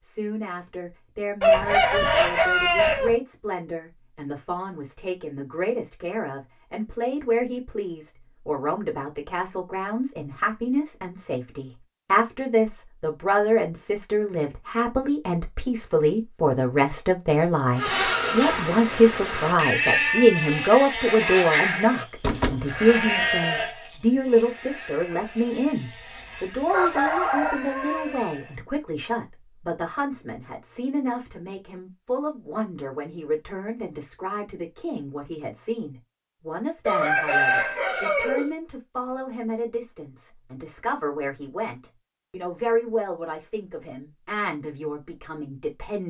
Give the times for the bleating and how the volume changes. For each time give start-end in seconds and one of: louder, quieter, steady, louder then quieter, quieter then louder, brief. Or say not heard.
17.8-28.6 quieter.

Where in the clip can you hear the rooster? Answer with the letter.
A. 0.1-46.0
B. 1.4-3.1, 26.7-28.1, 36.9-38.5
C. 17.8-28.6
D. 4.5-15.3
B.